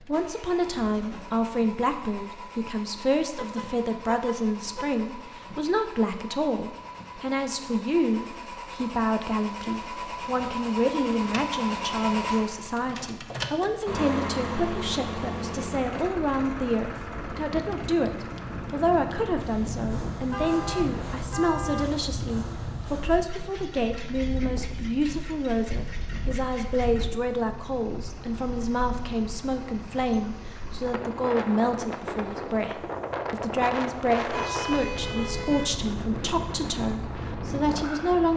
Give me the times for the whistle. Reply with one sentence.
The whistle can't be heard in this clip.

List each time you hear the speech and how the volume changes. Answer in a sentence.
You can hear the speech from 0.1 to 38.3 s, at a steady volume.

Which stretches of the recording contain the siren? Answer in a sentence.
You can't hear the siren here.